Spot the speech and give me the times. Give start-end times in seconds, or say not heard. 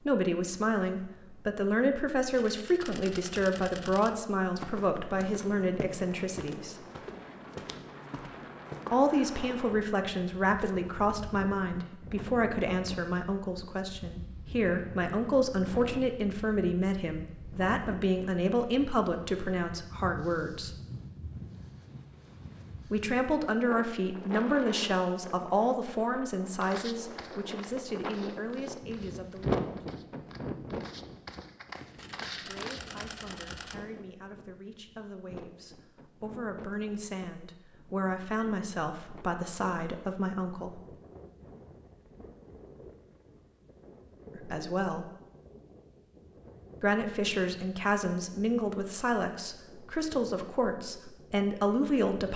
0.1-6.8, 8.9-20.7, 22.9-29.9, 32.4-40.8, 44.4-45.0, 46.8-52.3.